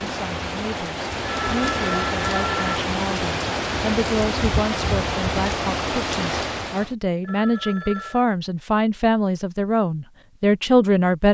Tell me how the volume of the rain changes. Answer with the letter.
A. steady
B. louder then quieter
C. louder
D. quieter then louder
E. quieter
A.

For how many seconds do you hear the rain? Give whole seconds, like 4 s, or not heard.
7 s.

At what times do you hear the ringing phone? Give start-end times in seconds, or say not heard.
1.2-2.8, 7.2-8.2.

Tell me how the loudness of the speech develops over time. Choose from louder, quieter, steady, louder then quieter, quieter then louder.
louder.